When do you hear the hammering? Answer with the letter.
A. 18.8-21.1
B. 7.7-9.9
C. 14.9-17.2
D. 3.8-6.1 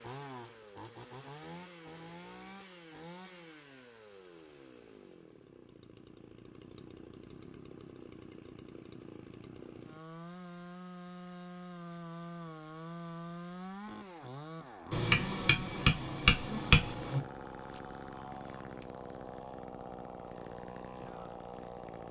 C.